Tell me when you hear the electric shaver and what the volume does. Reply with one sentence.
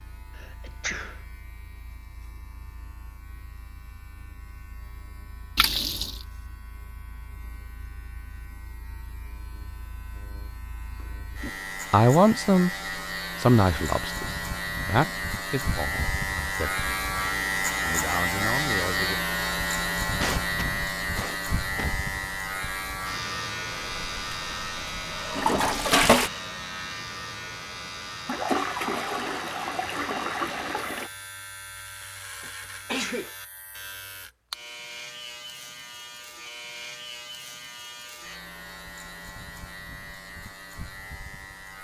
You can hear the electric shaver from 0.0 to 41.7 s, getting louder then quieter.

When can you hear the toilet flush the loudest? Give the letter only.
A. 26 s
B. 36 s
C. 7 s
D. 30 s
A.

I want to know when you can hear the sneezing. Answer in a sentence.
You can hear the sneezing from 0.3 to 1.2 s, from 20.2 to 22.0 s and from 32.4 to 33.4 s.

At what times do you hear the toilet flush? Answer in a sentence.
You can hear the toilet flush from 5.5 to 6.2 s, from 23.7 to 26.3 s and from 28.2 to 31.1 s.